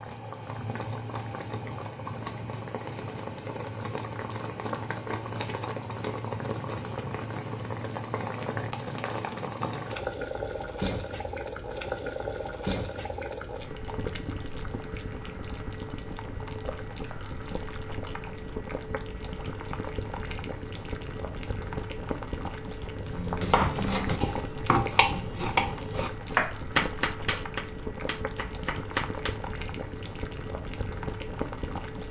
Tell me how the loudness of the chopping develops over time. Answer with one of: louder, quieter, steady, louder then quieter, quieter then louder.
quieter.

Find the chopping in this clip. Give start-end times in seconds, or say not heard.
23.1-29.3.